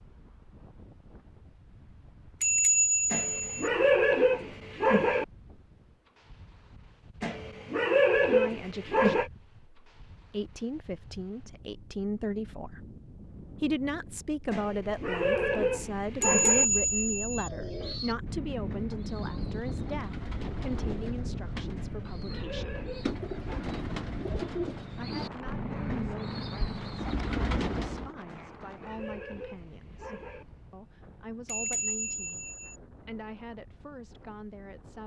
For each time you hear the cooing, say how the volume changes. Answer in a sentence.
The cooing can be heard from 17.4 to 28.1 s, getting louder.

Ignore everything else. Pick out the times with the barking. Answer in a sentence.
You can hear the barking from 3.1 to 5.2 s, from 7.2 to 9.3 s, from 14.5 to 16.6 s, from 21.8 to 23.6 s and from 28.2 to 30.4 s.